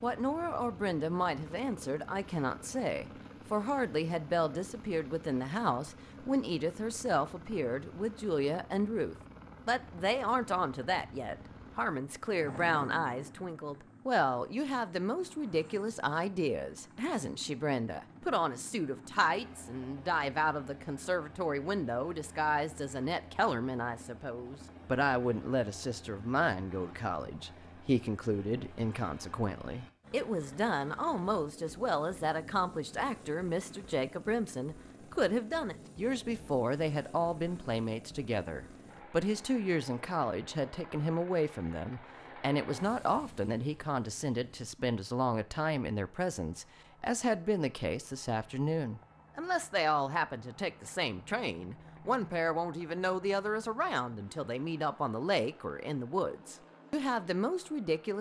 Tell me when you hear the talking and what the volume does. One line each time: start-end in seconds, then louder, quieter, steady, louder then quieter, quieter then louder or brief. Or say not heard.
0.0-58.1 steady.